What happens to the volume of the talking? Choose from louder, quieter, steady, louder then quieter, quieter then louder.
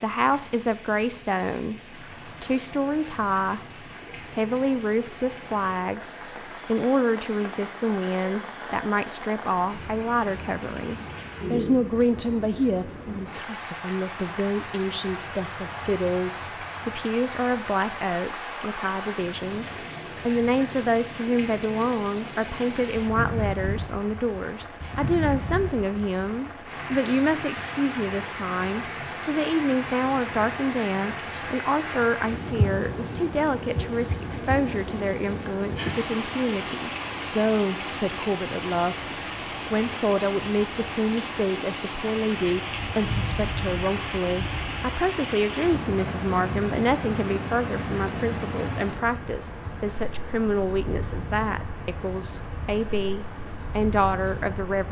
steady.